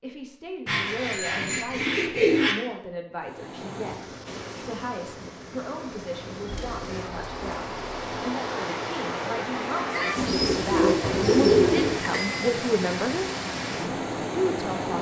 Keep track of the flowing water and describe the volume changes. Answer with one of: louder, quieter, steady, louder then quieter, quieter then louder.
louder.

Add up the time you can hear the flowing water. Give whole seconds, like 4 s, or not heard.
12 s.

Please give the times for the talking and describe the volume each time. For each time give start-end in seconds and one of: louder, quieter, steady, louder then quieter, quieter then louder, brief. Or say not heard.
0.0-14.9 louder.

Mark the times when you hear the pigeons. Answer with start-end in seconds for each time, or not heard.
0.7-2.5, 6.5-8.2, 10.2-12.0.